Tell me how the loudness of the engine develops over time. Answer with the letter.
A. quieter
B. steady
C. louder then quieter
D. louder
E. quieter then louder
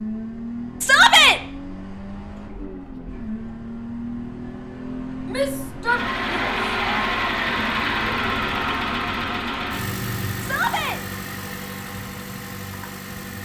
C.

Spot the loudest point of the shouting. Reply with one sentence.
The volume of the shouting peaks at 1 second.